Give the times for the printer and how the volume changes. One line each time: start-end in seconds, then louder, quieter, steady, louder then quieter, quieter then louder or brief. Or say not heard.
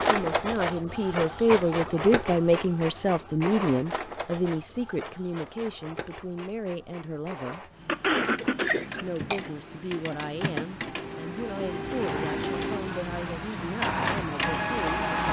0.0-15.2 quieter then louder.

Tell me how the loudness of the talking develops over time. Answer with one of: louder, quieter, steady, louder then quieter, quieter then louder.
quieter.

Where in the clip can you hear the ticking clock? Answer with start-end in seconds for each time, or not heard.
not heard.